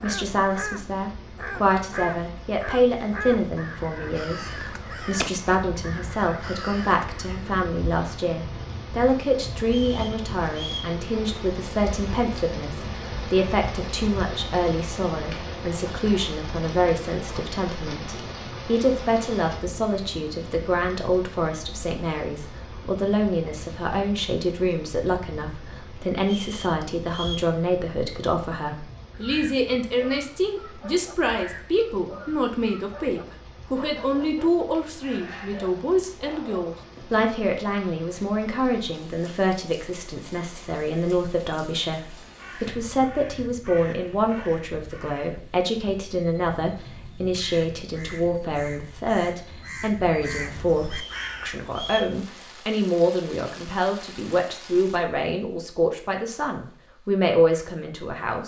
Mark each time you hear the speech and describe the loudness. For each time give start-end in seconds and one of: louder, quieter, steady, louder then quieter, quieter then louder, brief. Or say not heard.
0.0-58.4 steady.